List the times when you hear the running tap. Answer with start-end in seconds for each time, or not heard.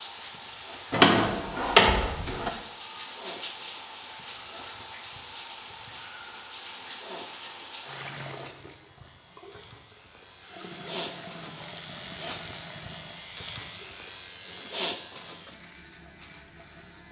0.0-17.0.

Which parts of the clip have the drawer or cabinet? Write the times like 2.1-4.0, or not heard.
0.9-2.5.